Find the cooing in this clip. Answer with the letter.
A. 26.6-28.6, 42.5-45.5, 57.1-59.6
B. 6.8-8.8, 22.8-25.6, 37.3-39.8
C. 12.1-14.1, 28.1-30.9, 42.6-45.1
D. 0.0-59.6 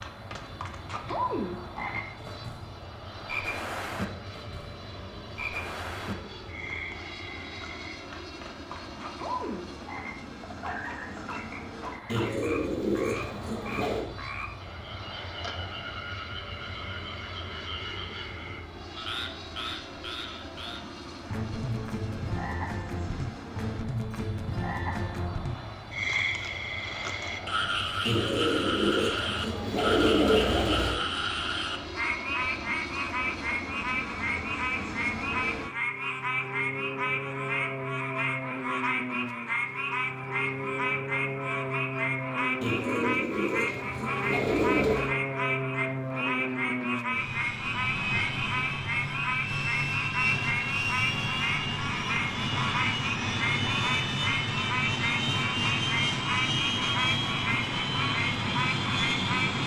C.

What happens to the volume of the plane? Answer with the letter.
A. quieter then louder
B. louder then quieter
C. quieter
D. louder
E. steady
D.